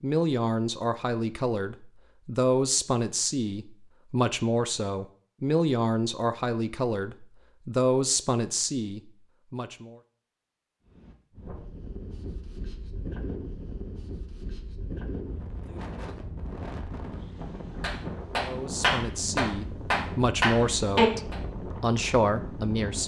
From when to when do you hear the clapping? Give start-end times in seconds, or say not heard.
17.8-21.4.